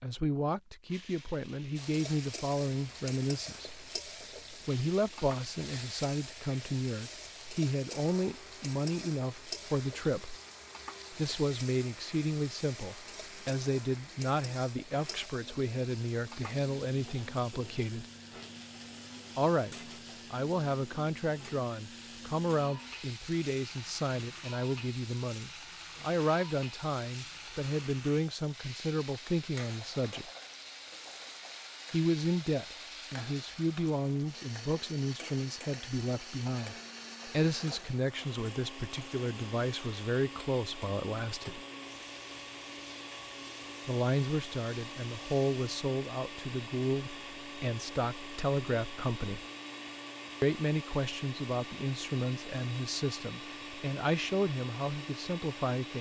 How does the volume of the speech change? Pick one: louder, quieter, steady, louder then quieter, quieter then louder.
steady.